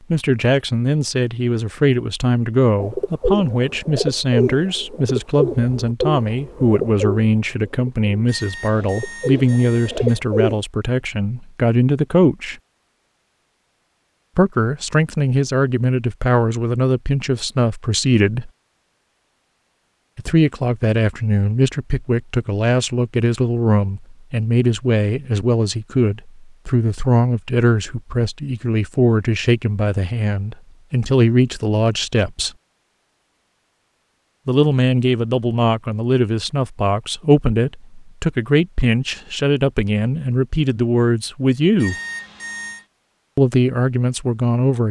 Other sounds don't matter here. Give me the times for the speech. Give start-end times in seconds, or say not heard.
0.1-12.6, 14.3-18.5, 20.1-32.5, 34.5-42.0, 43.4-44.8.